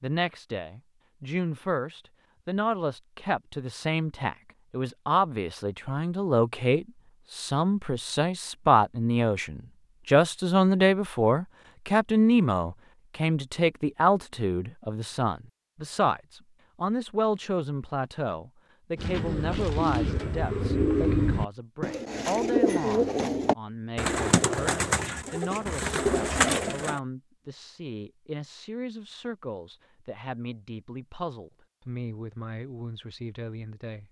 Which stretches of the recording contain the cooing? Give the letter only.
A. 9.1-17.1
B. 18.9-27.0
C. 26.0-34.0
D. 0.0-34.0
B.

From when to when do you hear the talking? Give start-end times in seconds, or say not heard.
0.0-34.0.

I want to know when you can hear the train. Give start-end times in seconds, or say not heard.
not heard.